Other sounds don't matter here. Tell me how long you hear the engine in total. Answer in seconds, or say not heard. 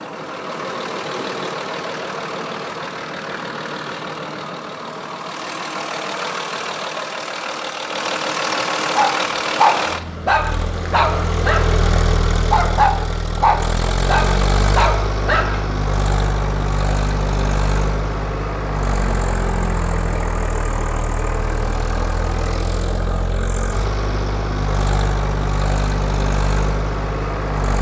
28 s.